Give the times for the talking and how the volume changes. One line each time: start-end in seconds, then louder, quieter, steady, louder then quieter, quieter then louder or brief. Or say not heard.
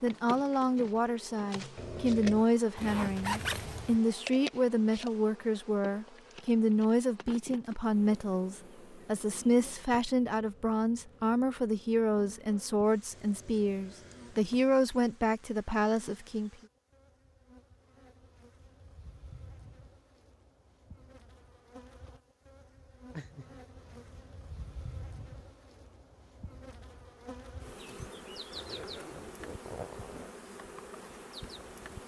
0.0-16.5 steady.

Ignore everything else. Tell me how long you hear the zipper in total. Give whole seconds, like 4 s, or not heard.
3 s.